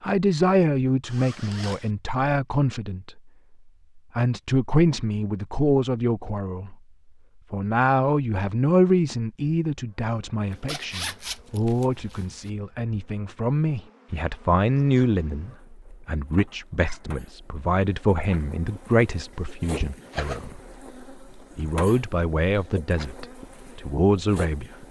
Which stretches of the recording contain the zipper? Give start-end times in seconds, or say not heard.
1.1-1.9, 10.5-12.5, 19.3-20.5.